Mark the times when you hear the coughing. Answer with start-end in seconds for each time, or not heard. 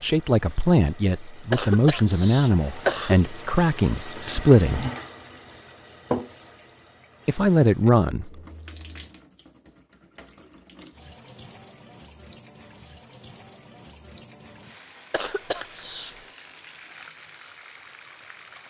1.5-3.1, 15.1-16.2.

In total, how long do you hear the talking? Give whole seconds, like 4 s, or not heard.
6 s.